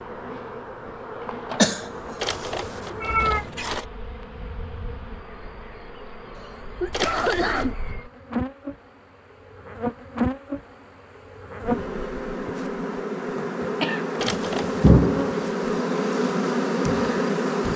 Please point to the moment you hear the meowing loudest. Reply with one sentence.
The loudest moment of the meowing is at 3 seconds.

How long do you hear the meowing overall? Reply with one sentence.
The meowing can be heard for 3 seconds in total.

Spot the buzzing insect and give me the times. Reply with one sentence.
The buzzing insect can be heard from 0.0 to 17.7 s.